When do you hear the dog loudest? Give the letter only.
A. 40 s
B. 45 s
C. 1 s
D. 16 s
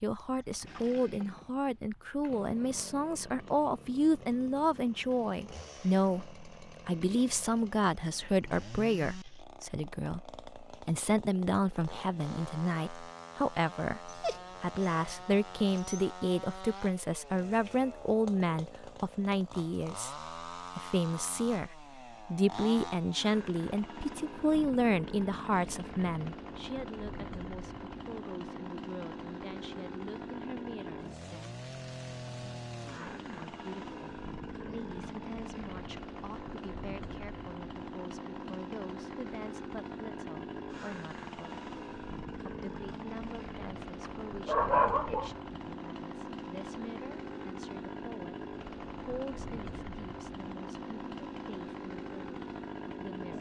B.